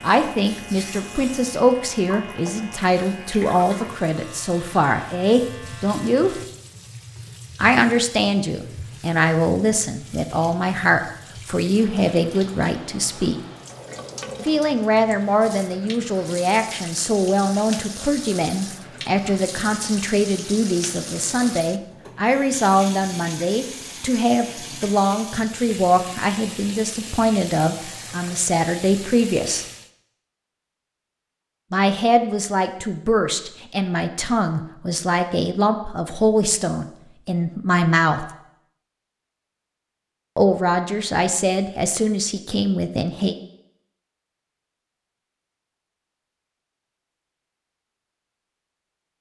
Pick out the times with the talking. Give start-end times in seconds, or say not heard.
0.0-6.4, 7.5-13.3, 14.4-29.6, 31.7-38.2, 40.4-43.4.